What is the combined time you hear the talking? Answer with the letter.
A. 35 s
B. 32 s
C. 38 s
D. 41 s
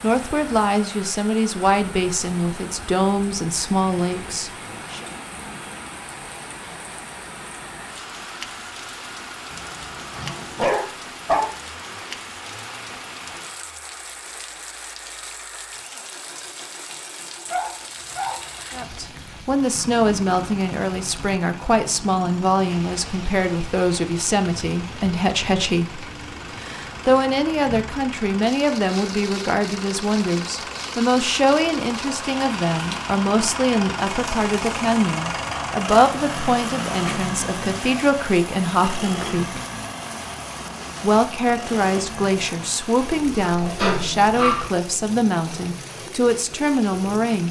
B.